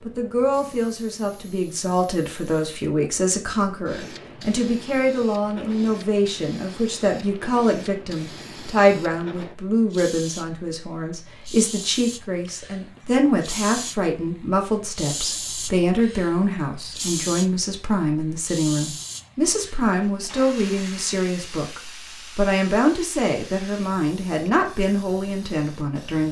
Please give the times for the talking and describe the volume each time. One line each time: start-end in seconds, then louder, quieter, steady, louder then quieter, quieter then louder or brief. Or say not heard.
0.1-26.2 steady.